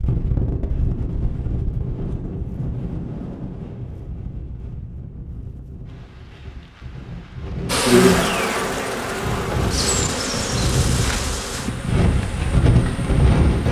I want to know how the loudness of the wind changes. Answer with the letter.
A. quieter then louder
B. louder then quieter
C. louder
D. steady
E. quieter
A.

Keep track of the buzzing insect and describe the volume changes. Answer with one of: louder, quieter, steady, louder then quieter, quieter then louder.
quieter.